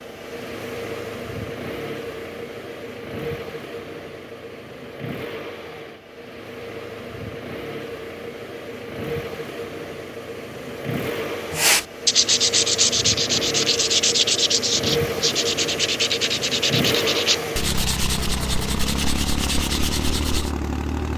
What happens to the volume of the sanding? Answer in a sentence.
The loudness of the sanding goes down.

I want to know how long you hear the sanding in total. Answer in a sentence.
The sanding can be heard for 9 seconds in total.